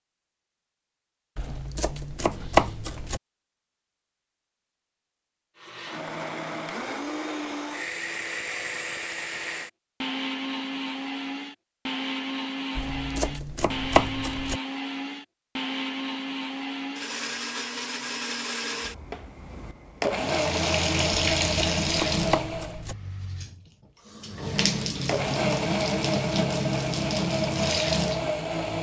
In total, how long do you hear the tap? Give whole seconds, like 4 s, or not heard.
8 s.